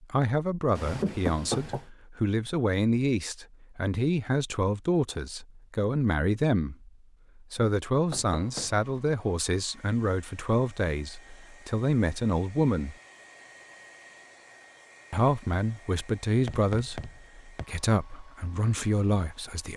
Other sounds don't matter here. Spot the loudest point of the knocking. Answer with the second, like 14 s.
1 s.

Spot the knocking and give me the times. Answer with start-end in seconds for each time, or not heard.
0.8-1.9, 8.1-8.9, 16.4-17.6.